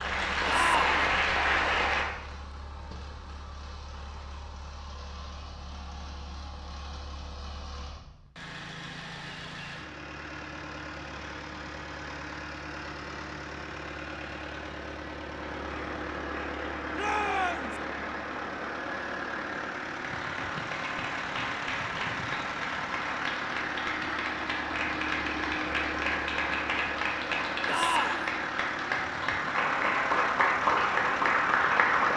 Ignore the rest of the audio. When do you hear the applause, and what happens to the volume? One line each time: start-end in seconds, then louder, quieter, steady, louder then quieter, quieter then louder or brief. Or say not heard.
0.0-2.0 brief
15.3-32.1 louder.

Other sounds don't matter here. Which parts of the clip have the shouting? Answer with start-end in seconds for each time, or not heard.
0.5-1.1, 16.9-17.8, 27.6-28.3.